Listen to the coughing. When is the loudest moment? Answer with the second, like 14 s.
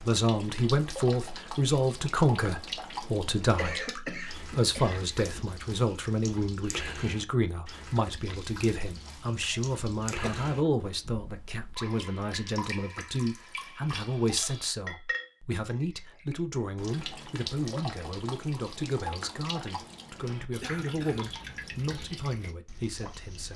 4 s.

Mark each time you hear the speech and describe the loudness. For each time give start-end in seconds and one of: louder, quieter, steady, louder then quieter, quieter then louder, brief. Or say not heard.
0.0-23.5 quieter.